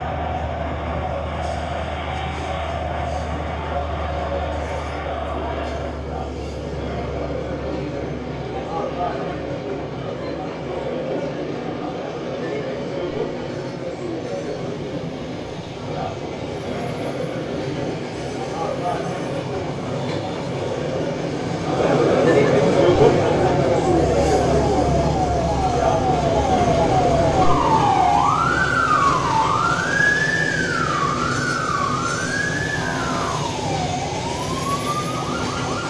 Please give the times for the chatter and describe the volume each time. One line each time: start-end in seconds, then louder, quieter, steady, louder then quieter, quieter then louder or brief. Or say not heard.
0.0-28.2 louder.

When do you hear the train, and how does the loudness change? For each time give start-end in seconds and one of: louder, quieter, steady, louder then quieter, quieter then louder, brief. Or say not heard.
0.0-35.8 louder.